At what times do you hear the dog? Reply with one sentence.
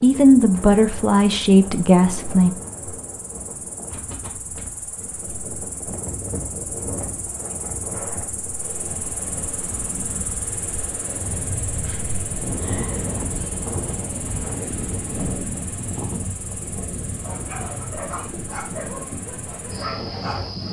The dog can be heard from 17.2 to 20.4 s.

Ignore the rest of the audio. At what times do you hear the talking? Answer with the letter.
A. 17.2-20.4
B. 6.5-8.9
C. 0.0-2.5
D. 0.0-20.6
C.